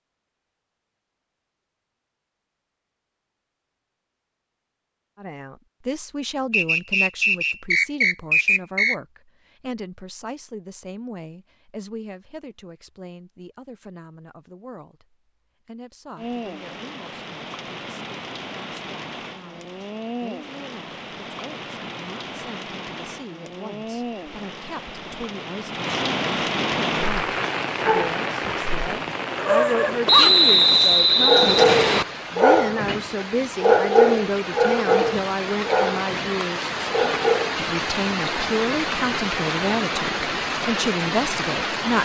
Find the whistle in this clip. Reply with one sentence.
The whistle can be heard from 6.5 to 8.9 s and from 30.1 to 32.0 s.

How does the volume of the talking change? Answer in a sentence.
The volume of the talking goes down, then up.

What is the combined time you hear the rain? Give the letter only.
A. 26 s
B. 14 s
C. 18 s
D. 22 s
A.